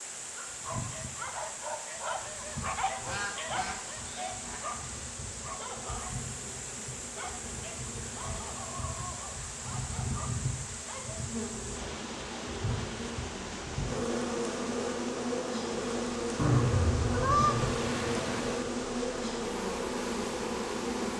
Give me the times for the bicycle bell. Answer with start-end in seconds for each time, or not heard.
not heard.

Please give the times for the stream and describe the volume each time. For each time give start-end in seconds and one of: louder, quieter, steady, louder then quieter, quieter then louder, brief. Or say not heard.
0.0-21.1 steady.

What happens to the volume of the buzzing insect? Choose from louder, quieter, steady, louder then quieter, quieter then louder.
louder.